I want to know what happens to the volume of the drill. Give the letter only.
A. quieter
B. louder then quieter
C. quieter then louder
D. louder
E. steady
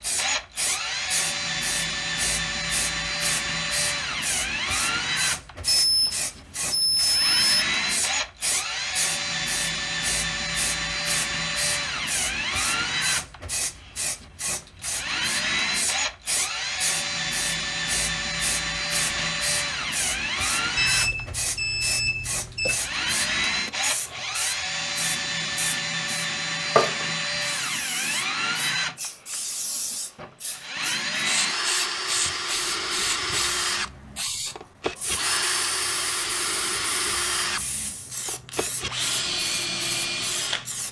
E.